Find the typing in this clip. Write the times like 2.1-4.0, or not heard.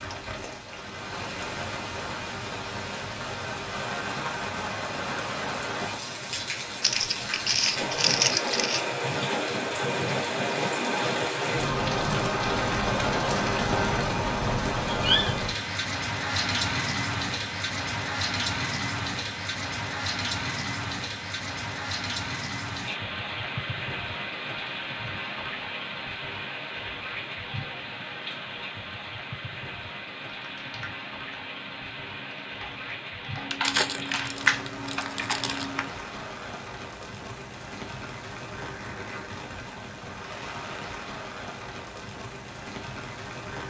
30.2-35.9.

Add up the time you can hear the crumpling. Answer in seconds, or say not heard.
4 s.